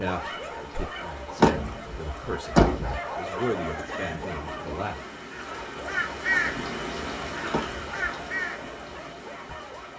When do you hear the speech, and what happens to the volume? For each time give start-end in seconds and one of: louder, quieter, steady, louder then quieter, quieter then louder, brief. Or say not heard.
0.0-5.0 louder then quieter.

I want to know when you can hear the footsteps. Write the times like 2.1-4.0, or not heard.
not heard.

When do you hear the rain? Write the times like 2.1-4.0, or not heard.
0.0-9.9.